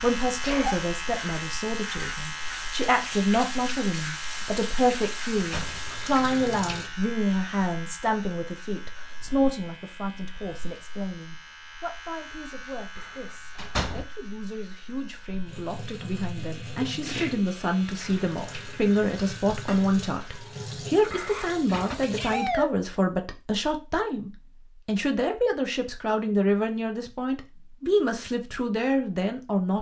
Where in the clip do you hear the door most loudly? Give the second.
14 s.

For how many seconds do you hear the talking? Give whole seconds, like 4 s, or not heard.
30 s.